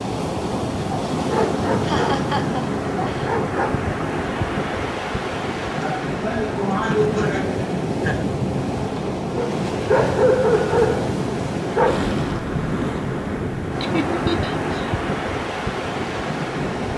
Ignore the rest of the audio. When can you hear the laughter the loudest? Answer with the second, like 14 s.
7 s.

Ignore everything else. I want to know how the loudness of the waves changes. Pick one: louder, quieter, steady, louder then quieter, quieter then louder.
steady.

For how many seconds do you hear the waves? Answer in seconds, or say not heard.
17 s.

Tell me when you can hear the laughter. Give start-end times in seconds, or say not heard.
1.8-3.3, 5.8-8.3, 13.8-14.9.